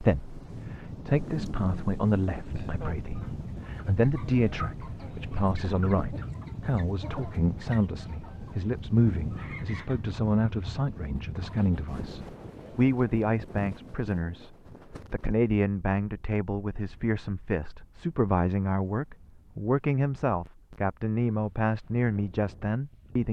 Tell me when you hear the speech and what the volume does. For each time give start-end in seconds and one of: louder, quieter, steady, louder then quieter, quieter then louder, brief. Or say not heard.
0.0-14.5 steady
15.1-23.2 steady.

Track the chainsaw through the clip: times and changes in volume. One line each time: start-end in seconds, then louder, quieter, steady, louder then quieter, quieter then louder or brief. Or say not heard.
not heard.